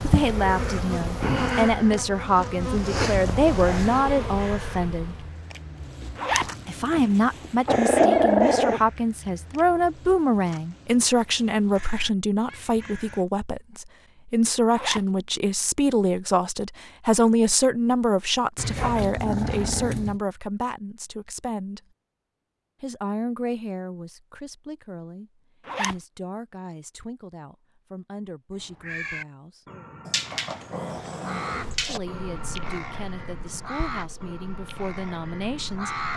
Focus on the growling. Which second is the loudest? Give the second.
8 s.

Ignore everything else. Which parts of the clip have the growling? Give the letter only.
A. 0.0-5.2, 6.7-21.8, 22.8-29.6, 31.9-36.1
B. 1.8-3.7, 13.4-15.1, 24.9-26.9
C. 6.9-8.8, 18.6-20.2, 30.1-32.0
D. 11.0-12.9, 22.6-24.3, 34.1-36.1
C.